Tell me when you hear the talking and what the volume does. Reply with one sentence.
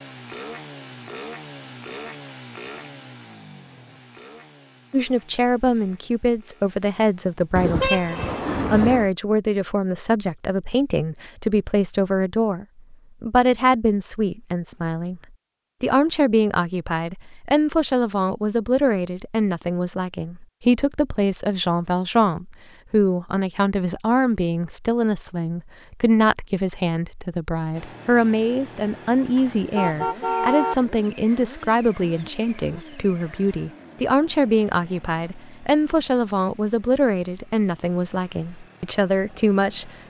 The talking can be heard from 4.9 to 15.2 s, at a steady volume; and from 15.8 to 39.9 s, at a steady volume.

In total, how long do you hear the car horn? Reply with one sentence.
You can hear the car horn for 3 seconds altogether.